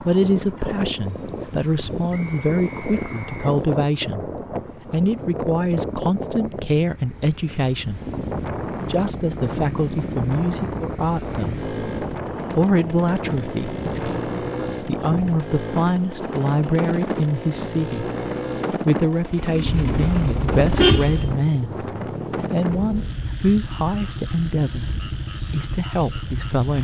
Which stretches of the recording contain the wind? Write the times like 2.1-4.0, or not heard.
0.0-26.6.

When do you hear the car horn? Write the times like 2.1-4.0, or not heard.
19.6-21.4.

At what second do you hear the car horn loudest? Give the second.
21 s.